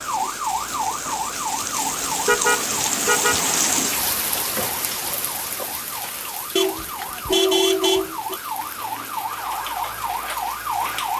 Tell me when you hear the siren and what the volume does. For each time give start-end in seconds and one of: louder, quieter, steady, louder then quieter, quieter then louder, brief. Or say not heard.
0.0-11.1 quieter then louder.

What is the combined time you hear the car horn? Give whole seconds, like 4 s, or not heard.
3 s.